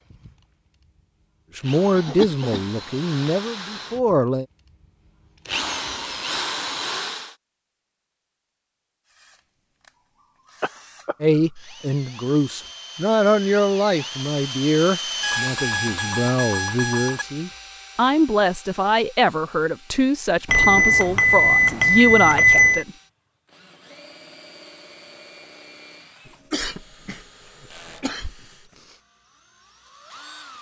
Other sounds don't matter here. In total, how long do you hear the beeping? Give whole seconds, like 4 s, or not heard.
6 s.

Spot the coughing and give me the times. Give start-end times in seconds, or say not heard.
1.9-2.6, 10.6-11.2, 26.2-28.9.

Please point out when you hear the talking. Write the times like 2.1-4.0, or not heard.
1.6-4.5, 11.2-22.9.